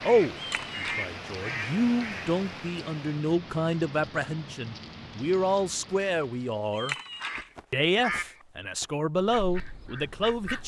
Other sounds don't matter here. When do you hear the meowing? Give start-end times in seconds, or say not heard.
0.3-1.1, 6.7-7.5.